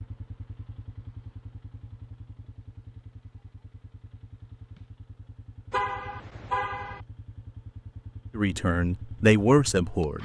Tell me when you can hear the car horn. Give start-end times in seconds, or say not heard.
5.7-7.0.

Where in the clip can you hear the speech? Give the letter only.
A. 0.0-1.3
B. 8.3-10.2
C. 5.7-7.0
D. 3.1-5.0
B.